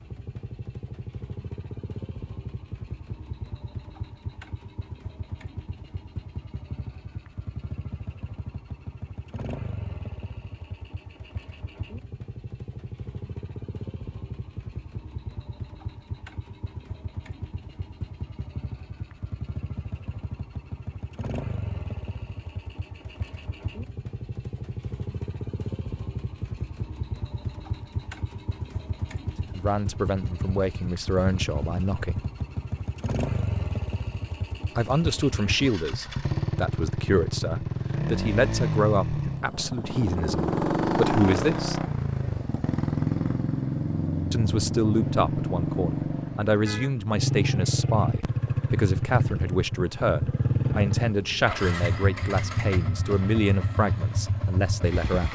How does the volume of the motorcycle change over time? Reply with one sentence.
The loudness of the motorcycle goes up.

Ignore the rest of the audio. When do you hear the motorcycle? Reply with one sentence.
You can hear the motorcycle from 0.0 to 55.2 s.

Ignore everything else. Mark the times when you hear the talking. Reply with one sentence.
You can hear the talking from 29.5 to 32.2 s, from 34.8 to 41.9 s and from 44.3 to 55.2 s.